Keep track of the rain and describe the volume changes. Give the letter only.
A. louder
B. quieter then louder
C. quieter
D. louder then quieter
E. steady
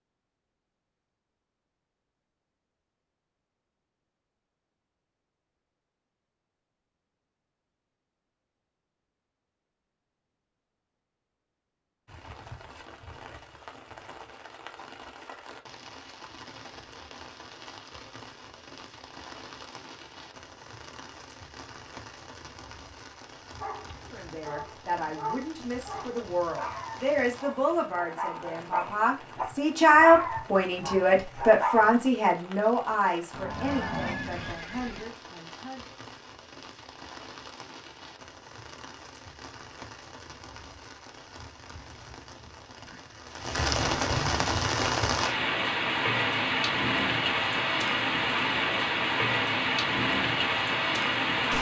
A.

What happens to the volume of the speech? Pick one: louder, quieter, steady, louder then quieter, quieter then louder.
louder then quieter.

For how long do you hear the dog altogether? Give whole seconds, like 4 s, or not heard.
8 s.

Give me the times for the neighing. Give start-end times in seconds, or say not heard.
33.3-35.0.